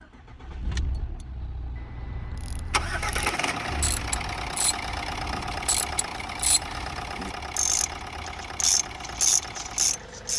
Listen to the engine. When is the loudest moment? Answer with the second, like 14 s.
3 s.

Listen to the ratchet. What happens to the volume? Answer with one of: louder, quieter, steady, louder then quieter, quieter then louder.
louder.